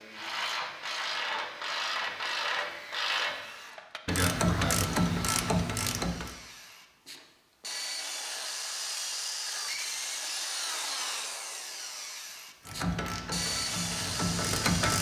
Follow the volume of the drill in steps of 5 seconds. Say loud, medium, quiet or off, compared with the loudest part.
medium, loud, loud.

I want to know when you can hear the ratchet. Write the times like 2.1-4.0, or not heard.
0.1-6.3, 12.7-14.9.